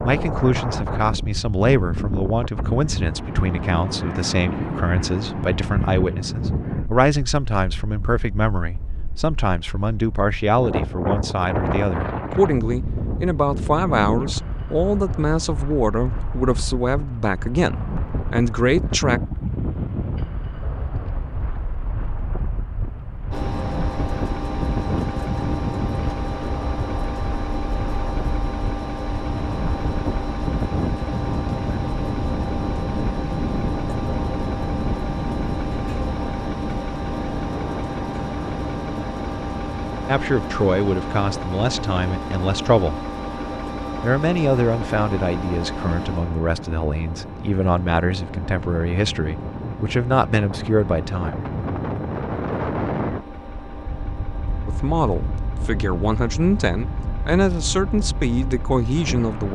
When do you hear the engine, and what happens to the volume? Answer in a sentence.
You can hear the engine from 23.3 to 59.4 s, getting quieter.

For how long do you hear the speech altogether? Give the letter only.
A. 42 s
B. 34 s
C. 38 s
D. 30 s
B.